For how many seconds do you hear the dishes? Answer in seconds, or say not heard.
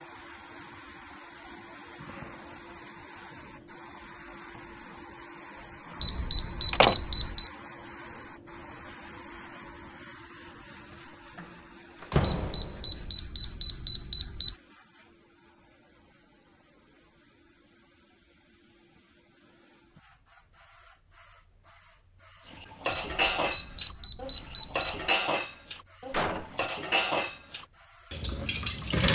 7 s.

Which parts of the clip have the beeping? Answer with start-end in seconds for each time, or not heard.
6.0-7.5, 12.4-14.6, 22.9-25.1.